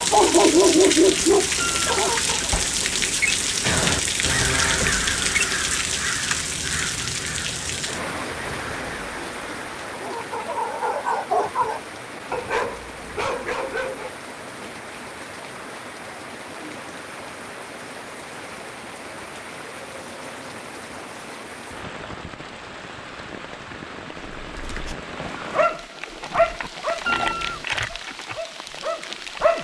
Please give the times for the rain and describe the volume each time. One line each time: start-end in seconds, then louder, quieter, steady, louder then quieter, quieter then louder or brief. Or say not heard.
0.0-29.5 quieter.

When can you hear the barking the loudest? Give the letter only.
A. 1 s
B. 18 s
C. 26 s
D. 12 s
A.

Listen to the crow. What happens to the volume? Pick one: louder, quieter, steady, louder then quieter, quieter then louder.
quieter.